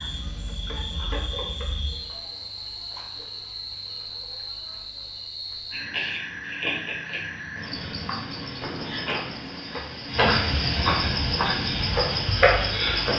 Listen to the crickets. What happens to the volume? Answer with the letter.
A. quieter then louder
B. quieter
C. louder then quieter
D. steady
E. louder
E.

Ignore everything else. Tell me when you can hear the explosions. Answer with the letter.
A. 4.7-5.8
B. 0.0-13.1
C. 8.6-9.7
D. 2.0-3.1
C.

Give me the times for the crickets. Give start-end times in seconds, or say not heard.
0.0-13.1.